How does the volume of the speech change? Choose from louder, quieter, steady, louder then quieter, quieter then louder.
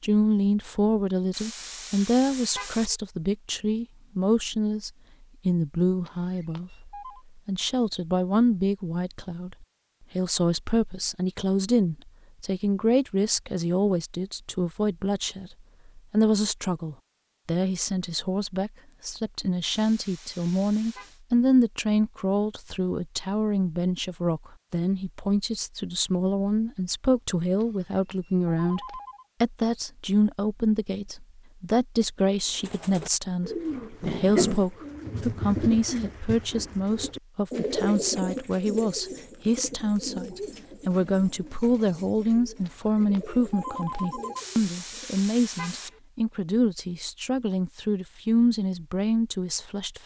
steady.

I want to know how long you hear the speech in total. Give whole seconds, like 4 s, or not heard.
50 s.